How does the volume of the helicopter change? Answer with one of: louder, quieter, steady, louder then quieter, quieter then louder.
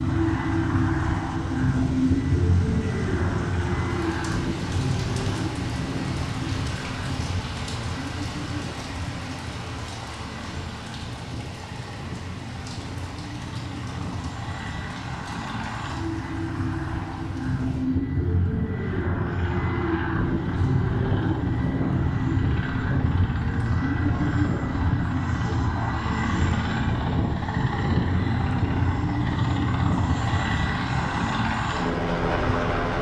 quieter then louder.